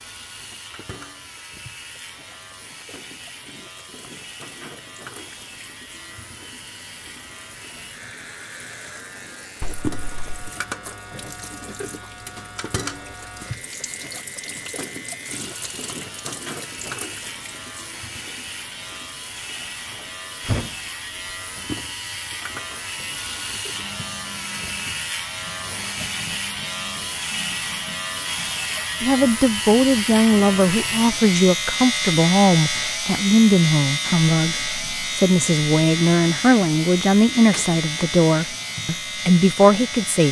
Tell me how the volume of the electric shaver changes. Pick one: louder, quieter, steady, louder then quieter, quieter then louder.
louder.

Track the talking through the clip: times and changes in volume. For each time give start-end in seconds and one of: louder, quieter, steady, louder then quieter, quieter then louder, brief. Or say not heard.
29.0-40.2 steady.